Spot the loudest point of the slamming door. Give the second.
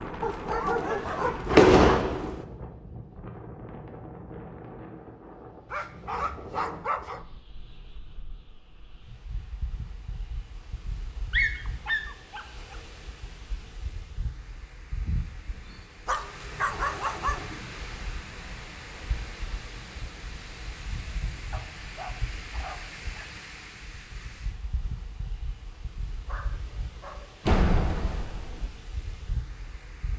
2 s.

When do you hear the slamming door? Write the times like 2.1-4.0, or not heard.
0.7-2.4, 27.4-28.7.